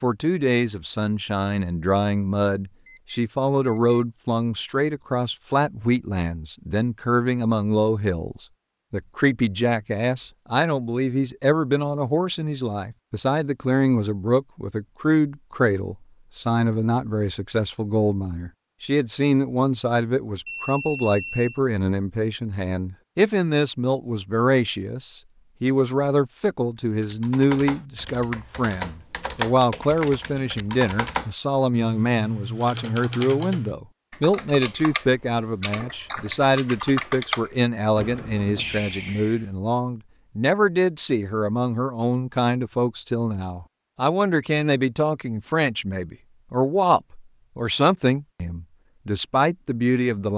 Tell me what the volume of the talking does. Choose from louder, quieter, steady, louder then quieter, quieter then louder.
steady.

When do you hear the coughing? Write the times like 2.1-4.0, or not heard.
not heard.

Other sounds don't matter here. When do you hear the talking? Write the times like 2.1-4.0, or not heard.
0.0-50.3.